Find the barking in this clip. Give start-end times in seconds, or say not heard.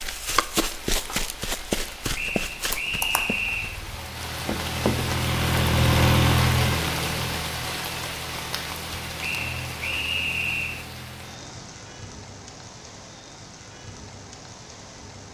not heard.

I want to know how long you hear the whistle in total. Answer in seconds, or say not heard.
3 s.